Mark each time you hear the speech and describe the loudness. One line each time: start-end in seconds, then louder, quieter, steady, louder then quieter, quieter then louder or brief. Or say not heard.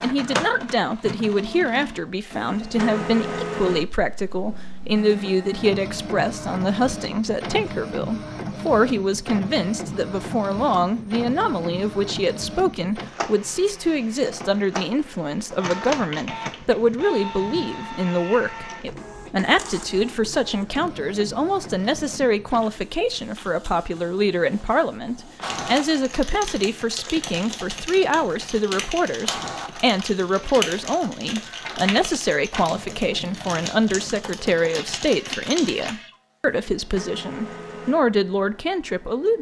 0.0-39.3 steady.